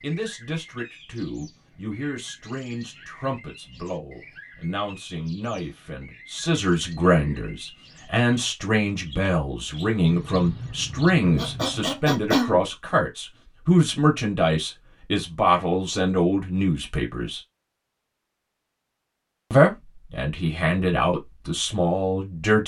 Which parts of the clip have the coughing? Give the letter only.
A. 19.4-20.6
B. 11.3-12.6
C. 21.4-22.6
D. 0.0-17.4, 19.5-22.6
B.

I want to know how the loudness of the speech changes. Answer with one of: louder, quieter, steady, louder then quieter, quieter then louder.
louder.